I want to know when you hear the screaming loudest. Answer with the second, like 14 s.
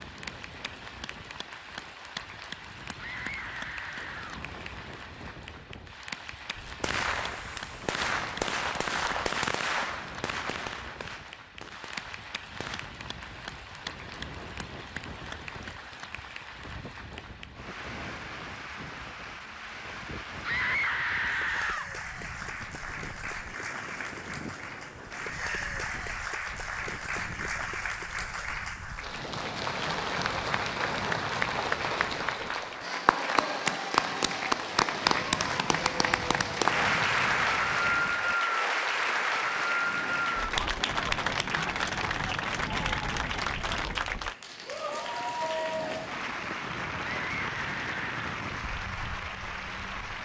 21 s.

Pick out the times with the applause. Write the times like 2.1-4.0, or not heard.
0.0-50.2.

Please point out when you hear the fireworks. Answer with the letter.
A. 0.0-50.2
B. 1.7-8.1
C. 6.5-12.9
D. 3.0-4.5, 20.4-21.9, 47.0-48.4
C.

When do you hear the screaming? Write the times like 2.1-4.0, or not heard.
3.0-4.5, 20.4-21.9, 47.0-48.4.